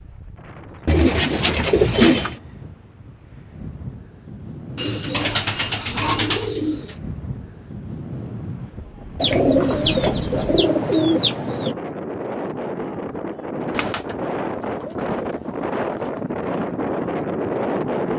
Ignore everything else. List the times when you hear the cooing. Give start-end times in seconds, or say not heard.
0.8-2.4, 4.8-7.0, 9.2-11.8, 13.8-16.2.